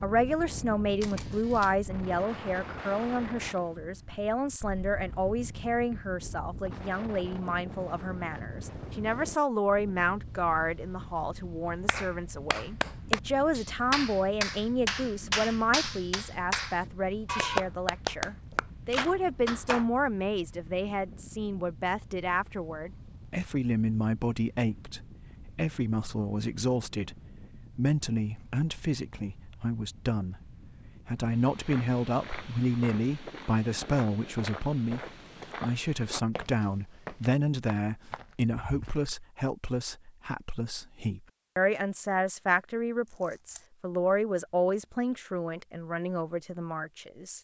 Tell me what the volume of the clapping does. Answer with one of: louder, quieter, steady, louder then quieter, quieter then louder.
steady.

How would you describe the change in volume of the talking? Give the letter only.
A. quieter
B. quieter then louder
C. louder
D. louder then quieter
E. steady
E.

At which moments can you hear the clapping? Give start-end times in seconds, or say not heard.
11.8-19.9.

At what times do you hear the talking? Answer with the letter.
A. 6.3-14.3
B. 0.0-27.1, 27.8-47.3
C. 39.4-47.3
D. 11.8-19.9
B.